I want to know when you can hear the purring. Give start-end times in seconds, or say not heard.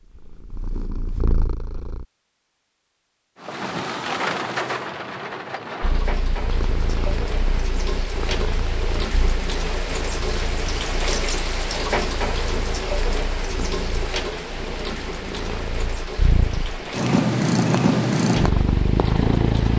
0.1-2.0, 5.8-19.7.